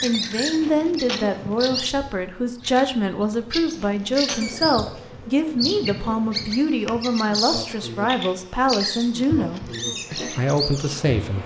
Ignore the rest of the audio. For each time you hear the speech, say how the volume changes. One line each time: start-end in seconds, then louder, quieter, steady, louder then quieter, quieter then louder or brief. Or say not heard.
0.0-11.4 steady.